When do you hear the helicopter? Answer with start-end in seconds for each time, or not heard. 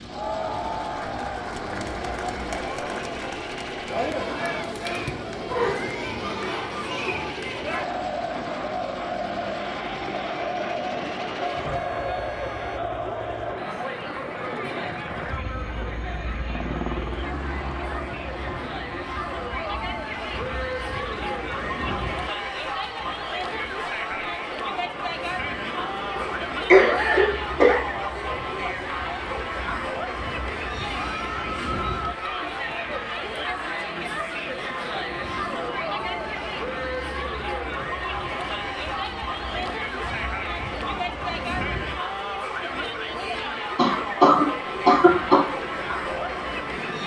0.0-47.0.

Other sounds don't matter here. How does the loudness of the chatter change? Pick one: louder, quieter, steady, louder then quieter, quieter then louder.
steady.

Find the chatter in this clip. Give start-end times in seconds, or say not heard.
0.0-47.0.